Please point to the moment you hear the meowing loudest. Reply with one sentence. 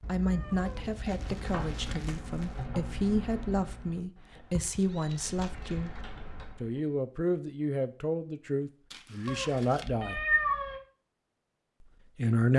The loudest moment of the meowing is at 10 seconds.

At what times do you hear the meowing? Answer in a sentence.
You can hear the meowing from 0.0 to 2.0 s, from 4.3 to 5.8 s and from 9.2 to 10.8 s.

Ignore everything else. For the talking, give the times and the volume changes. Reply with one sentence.
The talking can be heard from 0.1 to 10.2 s, at a steady volume; and briefly from 11.8 to 12.5 s.